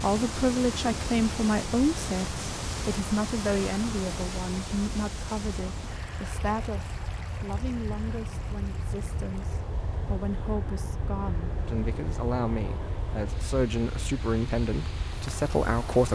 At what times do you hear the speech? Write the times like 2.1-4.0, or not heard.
0.0-16.1.